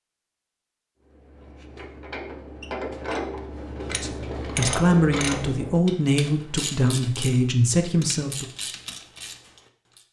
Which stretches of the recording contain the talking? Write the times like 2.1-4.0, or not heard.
3.9-8.4.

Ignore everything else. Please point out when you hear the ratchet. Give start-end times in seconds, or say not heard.
1.0-10.0.